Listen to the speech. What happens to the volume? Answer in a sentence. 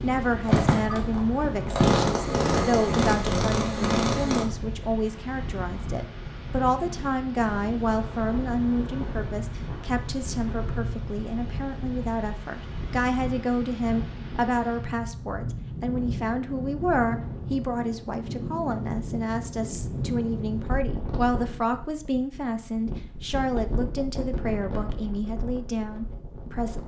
The volume of the speech stays about the same.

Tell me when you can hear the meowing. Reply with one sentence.
You can't hear the meowing here.